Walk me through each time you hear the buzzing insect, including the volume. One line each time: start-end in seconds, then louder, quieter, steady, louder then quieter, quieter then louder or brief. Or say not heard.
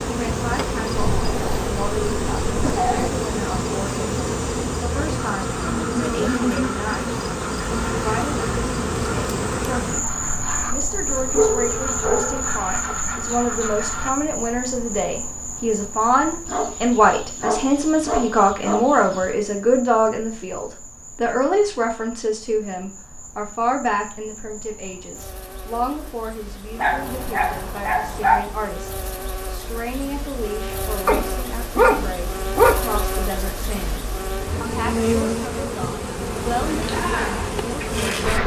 0.0-38.4 quieter then louder.